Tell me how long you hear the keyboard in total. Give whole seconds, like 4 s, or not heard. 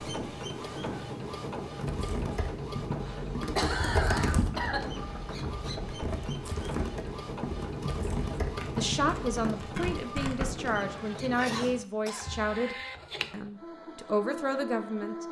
8 s.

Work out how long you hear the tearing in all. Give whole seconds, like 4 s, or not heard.
2 s.